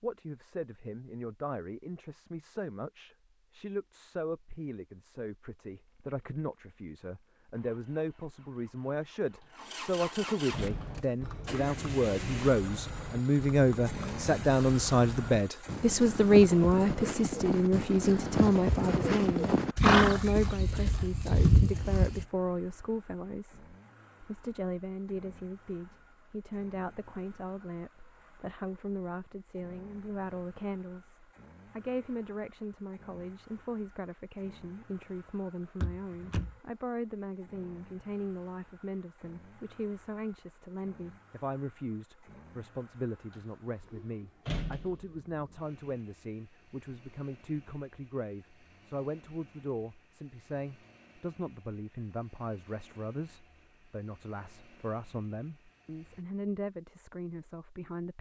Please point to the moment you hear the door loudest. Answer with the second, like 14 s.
45 s.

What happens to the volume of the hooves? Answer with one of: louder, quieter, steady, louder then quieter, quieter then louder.
louder.